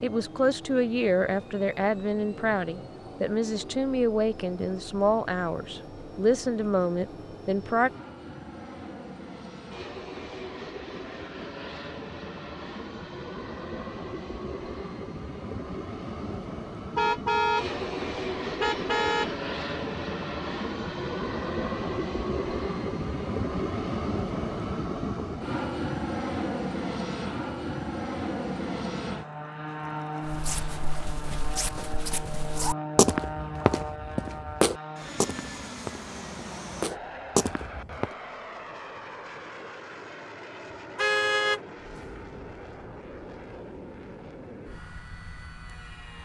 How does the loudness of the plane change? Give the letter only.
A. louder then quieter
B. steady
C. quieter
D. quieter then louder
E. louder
A.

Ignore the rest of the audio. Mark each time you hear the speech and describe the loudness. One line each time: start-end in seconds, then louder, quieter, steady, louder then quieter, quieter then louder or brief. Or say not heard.
0.0-7.9 steady.